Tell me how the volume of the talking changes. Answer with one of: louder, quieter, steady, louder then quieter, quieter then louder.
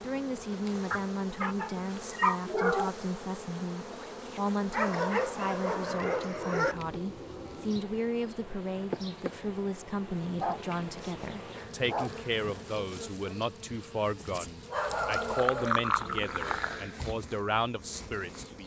steady.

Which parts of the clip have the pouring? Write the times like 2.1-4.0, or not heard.
14.8-16.9.